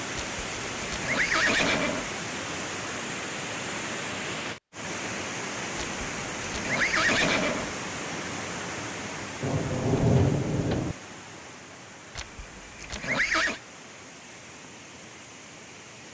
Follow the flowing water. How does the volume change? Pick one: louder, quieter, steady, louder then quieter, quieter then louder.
quieter.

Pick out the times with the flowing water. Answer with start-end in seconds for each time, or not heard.
0.0-16.0.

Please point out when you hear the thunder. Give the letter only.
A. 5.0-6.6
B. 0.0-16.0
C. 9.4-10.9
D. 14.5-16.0
C.